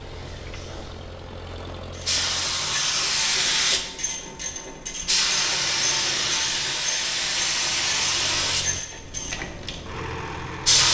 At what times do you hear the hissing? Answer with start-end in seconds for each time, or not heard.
0.0-10.9.